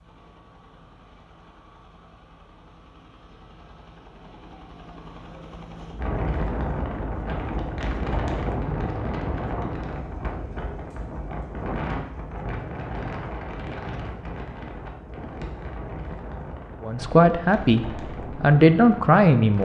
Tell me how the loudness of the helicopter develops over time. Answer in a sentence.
The volume of the helicopter goes up.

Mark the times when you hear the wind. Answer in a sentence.
The wind can be heard from 6.0 to 19.6 s.